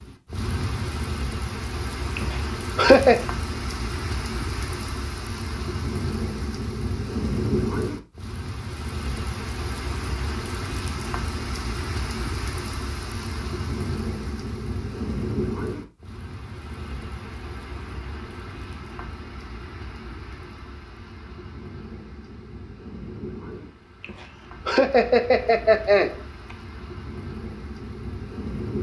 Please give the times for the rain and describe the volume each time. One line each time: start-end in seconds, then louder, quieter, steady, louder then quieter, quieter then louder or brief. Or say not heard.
0.0-28.7 quieter.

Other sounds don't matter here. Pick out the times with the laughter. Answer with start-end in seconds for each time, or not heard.
2.1-3.2, 24.0-26.6.